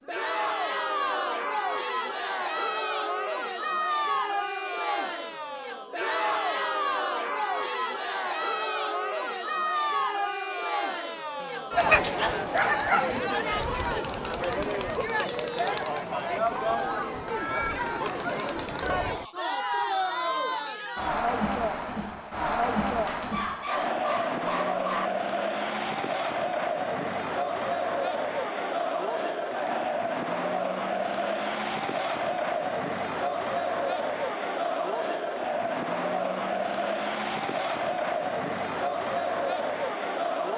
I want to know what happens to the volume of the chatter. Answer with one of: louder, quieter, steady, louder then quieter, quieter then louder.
steady.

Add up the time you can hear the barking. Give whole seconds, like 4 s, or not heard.
4 s.